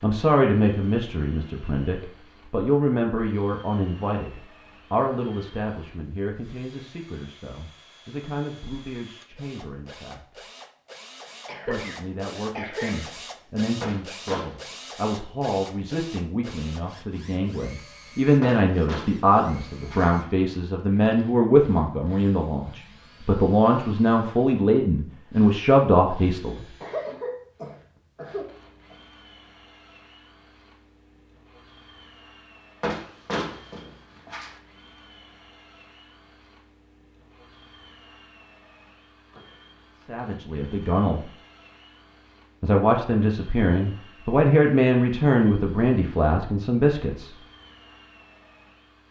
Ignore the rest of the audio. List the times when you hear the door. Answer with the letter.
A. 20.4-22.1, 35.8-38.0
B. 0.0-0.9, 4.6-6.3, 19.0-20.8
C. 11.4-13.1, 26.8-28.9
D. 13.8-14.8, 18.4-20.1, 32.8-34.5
D.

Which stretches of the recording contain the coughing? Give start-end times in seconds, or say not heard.
11.4-13.1, 26.8-28.9.